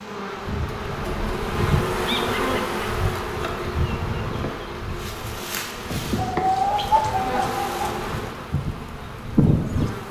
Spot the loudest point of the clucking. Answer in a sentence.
The loudest moment of the clucking is at 7 seconds.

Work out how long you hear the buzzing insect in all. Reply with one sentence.
You can hear the buzzing insect for 10 seconds altogether.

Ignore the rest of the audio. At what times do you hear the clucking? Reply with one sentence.
The clucking can be heard from 6.2 to 8.0 s.